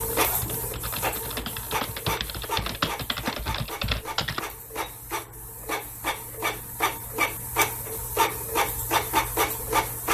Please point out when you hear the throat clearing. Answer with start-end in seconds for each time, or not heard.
not heard.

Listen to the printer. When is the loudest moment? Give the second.
9 s.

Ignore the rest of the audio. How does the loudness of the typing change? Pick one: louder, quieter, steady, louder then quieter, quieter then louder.
louder.